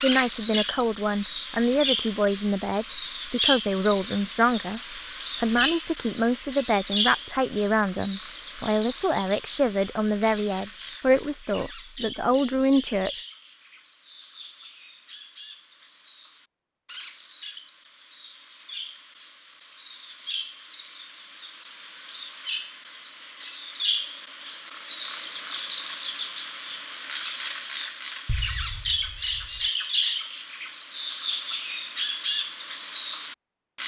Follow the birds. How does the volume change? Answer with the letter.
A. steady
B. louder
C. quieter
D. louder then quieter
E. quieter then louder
E.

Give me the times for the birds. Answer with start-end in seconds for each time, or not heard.
0.0-33.8.